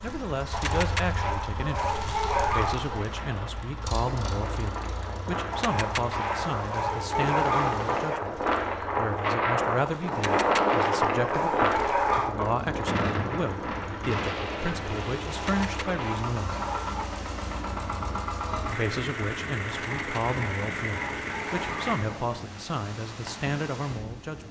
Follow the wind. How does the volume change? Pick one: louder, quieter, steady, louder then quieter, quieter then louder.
louder then quieter.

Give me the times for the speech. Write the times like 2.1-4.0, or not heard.
0.0-16.6, 18.6-24.4.